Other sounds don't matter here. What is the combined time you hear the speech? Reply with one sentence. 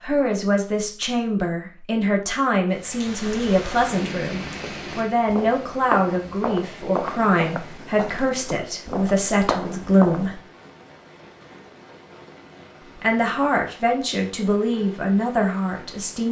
You can hear the speech for 14 seconds altogether.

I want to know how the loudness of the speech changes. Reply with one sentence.
The volume of the speech stays about the same.